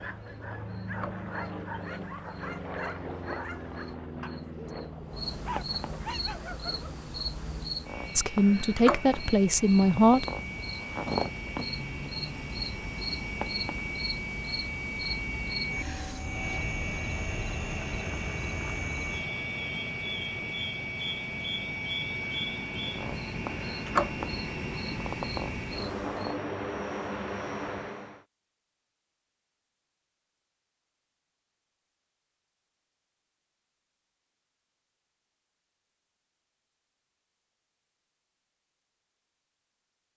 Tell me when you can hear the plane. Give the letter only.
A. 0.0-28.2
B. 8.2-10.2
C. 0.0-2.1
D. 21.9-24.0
A.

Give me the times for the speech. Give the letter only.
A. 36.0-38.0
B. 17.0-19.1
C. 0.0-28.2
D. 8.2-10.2
D.